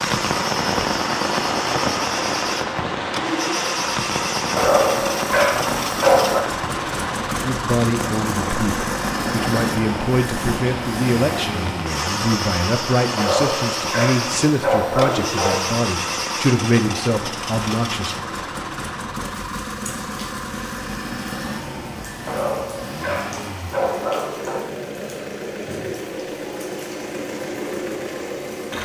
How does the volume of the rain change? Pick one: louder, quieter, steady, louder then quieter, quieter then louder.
quieter.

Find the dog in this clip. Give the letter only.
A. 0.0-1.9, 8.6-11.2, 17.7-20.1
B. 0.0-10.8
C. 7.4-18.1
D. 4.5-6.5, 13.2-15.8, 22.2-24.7
D.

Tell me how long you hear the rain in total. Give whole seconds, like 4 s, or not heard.
29 s.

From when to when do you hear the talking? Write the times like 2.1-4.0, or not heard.
7.4-18.1.